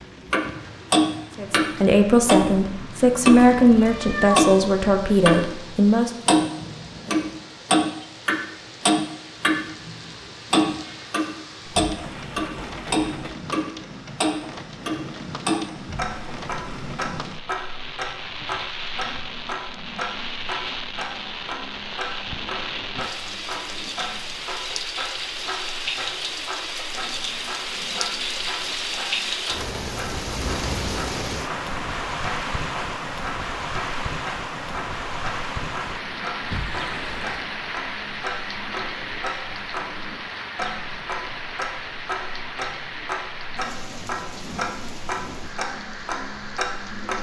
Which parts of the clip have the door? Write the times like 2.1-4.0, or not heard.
11.7-13.4, 15.8-16.9, 36.4-37.5.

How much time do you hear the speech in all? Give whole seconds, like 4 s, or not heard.
5 s.